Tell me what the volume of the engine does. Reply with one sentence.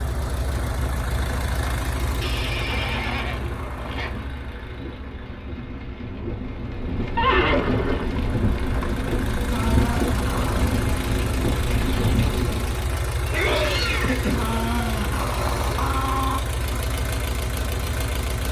The loudness of the engine goes down, then up.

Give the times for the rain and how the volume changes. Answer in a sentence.
The rain can be heard from 0.0 to 12.9 s, getting louder.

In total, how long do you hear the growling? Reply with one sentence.
The growling can be heard for 5 seconds in total.